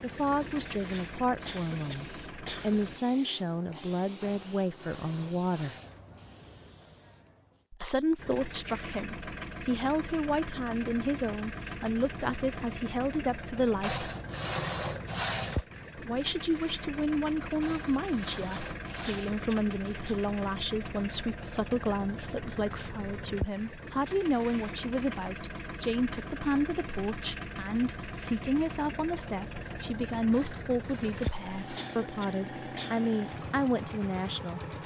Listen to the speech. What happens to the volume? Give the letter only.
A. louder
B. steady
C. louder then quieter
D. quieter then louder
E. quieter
B.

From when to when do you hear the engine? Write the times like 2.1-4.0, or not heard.
0.0-3.0, 8.2-34.8.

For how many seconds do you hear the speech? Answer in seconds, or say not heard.
31 s.